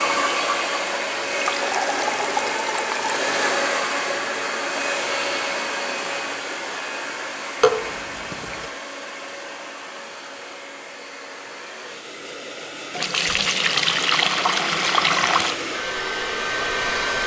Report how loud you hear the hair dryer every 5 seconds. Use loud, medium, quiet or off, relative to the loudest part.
loud, medium, medium, loud.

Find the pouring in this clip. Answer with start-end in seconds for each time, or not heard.
1.3-3.1, 7.6-8.7, 12.9-15.6.